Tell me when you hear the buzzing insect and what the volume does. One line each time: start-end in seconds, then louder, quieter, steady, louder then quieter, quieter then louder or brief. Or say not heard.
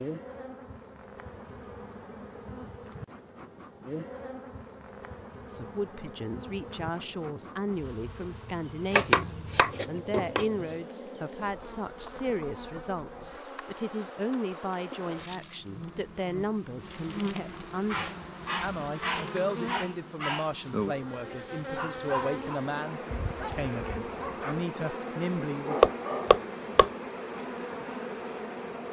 0.0-28.8 louder.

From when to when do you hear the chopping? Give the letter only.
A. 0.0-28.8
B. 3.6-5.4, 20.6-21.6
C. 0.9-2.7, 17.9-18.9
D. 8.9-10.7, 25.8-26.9
D.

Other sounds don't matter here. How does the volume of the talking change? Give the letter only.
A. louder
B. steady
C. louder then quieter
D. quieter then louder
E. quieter
B.